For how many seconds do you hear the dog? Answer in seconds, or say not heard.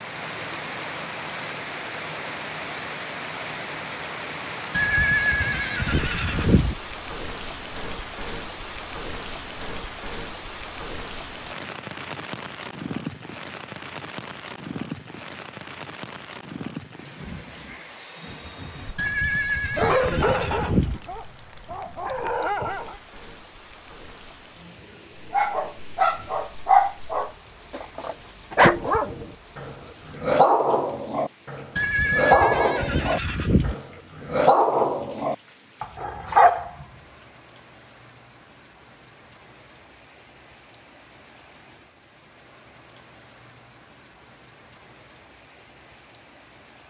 15 s.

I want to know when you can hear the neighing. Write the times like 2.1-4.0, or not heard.
4.7-6.8, 18.9-21.0, 31.8-33.8.